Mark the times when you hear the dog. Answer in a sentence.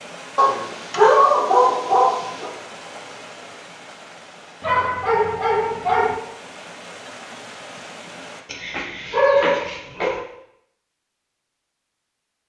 The dog can be heard from 0.3 to 2.5 s, from 4.6 to 6.2 s and from 8.4 to 10.2 s.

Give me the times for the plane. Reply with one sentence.
You can't hear the plane here.